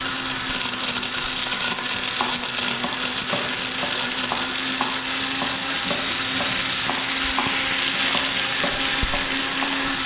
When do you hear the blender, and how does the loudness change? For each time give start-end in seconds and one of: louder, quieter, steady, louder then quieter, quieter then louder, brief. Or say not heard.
0.0-10.0 steady.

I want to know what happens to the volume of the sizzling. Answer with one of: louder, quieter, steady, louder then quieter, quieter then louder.
louder.